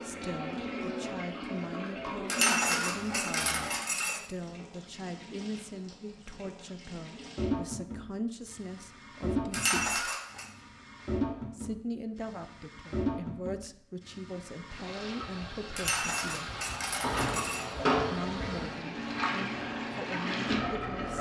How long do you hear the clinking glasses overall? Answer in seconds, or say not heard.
5 s.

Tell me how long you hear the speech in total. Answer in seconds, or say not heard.
18 s.